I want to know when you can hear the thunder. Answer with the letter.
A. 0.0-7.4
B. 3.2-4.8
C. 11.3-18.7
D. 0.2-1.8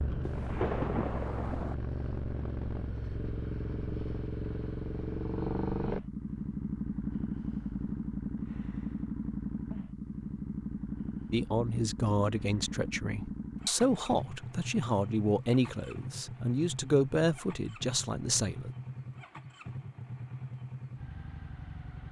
D.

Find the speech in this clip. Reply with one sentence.
The speech can be heard from 11.3 to 18.7 s.